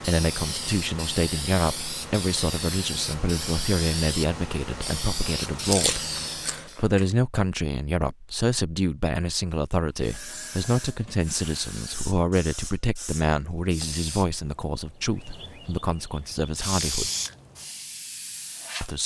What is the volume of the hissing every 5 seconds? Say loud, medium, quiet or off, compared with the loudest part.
loud, loud, medium, loud.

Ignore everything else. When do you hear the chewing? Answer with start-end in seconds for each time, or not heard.
5.5-7.0.